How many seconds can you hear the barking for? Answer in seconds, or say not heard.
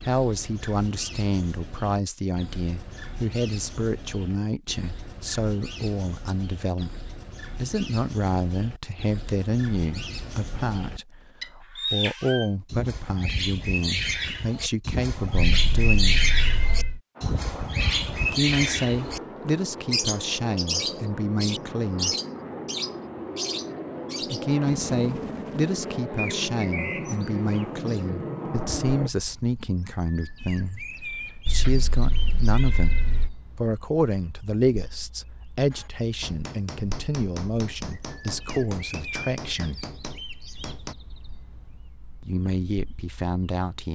not heard.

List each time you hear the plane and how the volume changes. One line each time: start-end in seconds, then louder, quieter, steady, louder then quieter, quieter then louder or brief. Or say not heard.
17.1-29.1 louder.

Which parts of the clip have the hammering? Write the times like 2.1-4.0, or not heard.
35.7-41.0.